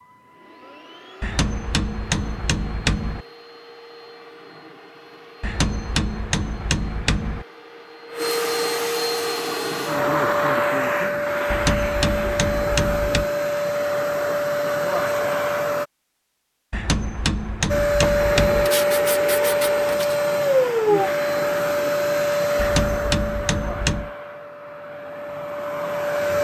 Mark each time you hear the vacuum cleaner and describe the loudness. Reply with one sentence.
The vacuum cleaner can be heard from 0.0 to 15.8 s, getting louder; and from 17.6 to 26.3 s, getting quieter.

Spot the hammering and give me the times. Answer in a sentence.
The hammering can be heard from 1.2 to 3.2 s, from 5.4 to 7.5 s, from 11.5 to 13.3 s, from 16.7 to 18.7 s and from 22.6 to 24.1 s.